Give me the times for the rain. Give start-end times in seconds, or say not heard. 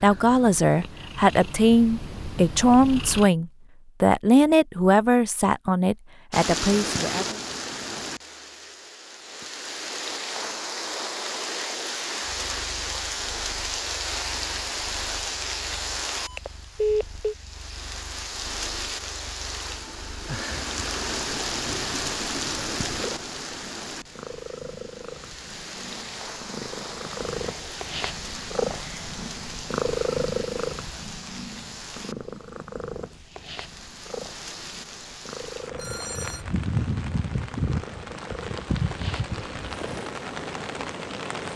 6.3-41.5.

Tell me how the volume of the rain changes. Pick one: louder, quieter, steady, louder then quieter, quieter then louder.
quieter then louder.